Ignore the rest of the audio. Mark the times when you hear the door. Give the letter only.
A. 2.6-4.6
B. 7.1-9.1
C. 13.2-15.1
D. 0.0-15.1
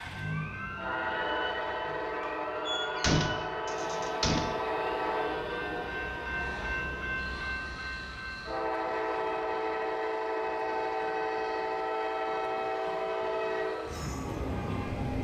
A.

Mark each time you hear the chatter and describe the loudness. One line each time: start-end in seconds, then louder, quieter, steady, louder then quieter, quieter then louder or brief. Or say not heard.
not heard.